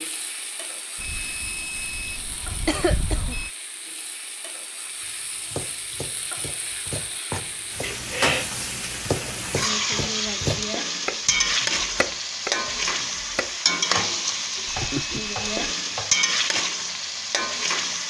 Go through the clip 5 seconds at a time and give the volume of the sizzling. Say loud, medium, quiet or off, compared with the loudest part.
quiet, medium, loud, loud.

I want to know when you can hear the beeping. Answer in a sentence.
The beeping can be heard from 0.9 to 3.5 s and from 14.7 to 15.8 s.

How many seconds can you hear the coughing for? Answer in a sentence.
You can hear the coughing for 2 seconds altogether.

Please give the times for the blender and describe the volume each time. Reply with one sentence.
The blender can't be heard in this clip.